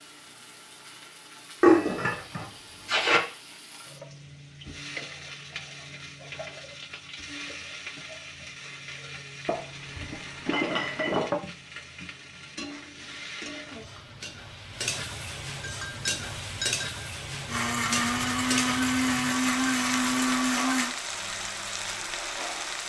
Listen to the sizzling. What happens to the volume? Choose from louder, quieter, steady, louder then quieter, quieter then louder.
louder.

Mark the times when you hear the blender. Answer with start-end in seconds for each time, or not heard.
17.4-20.9.